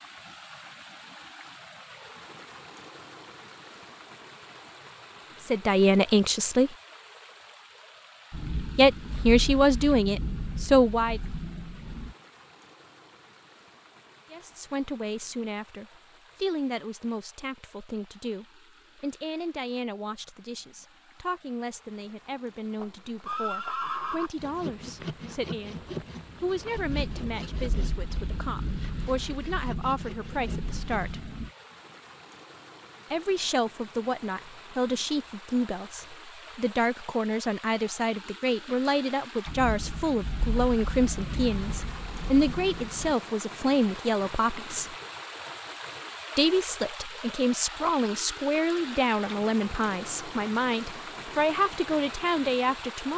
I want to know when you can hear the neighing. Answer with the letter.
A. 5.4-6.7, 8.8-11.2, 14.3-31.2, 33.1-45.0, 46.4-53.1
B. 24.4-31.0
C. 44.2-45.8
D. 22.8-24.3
D.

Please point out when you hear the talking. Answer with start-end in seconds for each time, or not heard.
5.4-6.7, 8.8-11.2, 14.3-31.2, 33.1-45.0, 46.4-53.1.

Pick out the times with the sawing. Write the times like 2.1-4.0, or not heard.
24.4-31.0.